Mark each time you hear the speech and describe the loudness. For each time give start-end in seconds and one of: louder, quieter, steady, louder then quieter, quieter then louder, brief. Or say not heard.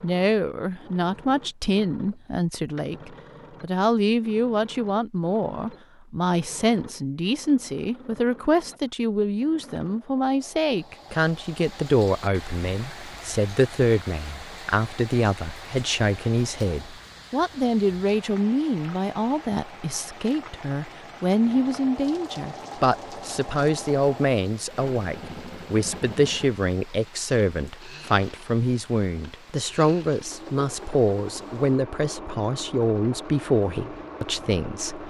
0.0-35.0 steady.